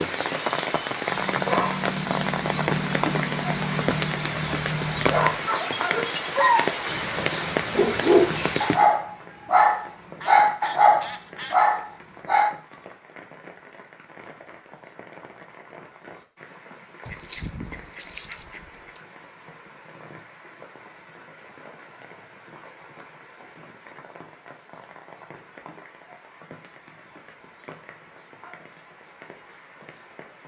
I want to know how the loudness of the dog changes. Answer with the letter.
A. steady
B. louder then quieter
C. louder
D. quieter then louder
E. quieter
C.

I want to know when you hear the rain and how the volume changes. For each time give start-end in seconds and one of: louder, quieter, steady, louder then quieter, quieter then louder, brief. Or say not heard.
0.0-30.4 quieter.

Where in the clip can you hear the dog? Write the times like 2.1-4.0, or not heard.
1.1-12.5.